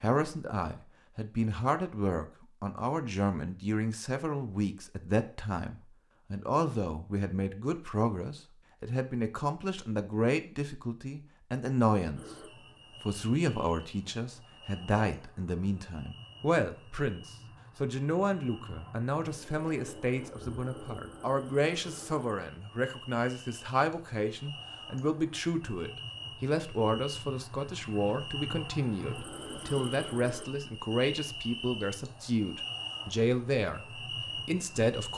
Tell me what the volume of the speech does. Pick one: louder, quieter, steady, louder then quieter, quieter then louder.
steady.